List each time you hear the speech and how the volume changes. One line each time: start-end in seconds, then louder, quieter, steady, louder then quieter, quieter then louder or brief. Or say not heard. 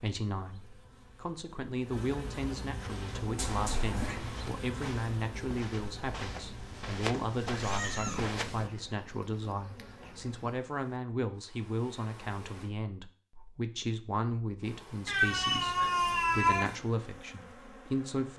0.0-18.3 steady.